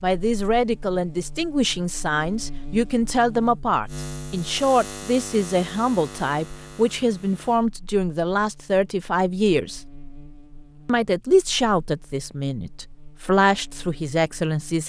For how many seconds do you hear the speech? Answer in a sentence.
You can hear the speech for 14 seconds altogether.